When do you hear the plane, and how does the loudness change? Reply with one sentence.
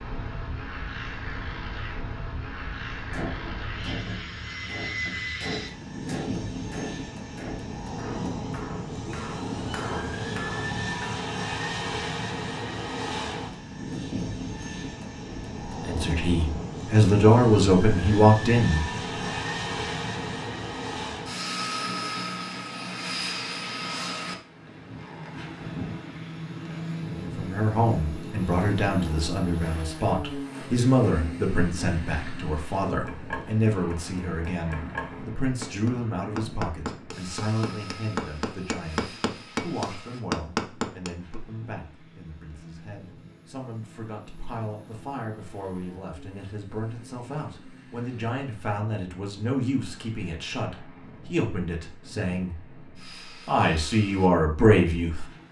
The plane can be heard from 0.0 to 55.4 s, getting quieter.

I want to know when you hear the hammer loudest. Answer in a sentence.
The volume of the hammer peaks at 40 seconds.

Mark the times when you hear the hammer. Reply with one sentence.
You can hear the hammer from 3.1 to 11.1 s and from 33.0 to 41.4 s.